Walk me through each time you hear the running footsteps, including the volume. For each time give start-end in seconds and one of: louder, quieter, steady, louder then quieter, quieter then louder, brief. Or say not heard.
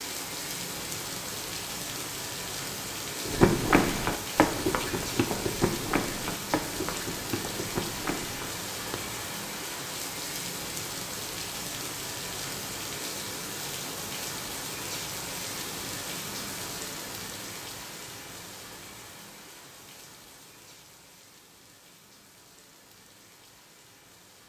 3.2-9.0 quieter.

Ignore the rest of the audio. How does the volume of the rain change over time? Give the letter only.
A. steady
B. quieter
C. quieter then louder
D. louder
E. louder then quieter
B.